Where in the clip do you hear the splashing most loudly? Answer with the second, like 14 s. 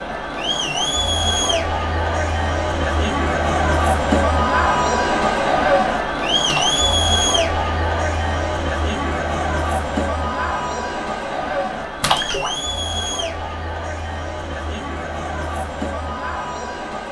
12 s.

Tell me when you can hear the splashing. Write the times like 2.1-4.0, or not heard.
6.5-7.0, 12.0-12.6.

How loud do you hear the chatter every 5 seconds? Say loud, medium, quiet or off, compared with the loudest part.
loud, loud, medium, medium.